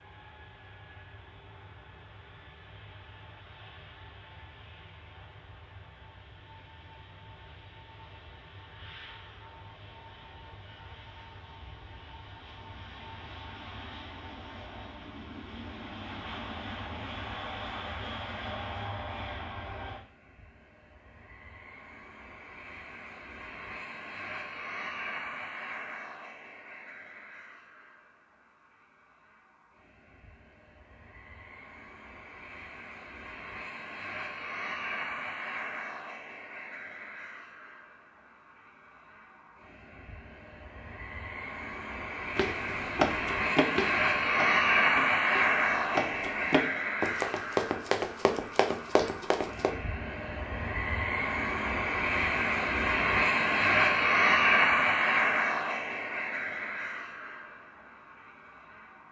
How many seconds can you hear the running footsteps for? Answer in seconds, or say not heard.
7 s.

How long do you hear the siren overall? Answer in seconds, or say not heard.
not heard.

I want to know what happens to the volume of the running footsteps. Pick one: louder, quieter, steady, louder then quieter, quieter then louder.
quieter then louder.